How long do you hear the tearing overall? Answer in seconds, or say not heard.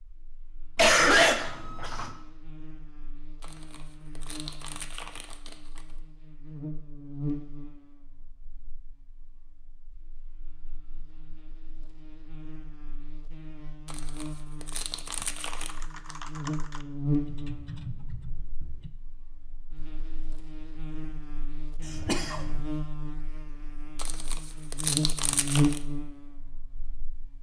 6 s.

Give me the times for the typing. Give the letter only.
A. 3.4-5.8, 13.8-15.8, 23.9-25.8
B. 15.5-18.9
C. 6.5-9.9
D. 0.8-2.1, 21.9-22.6
B.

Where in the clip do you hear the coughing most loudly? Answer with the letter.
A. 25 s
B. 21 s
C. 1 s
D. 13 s
C.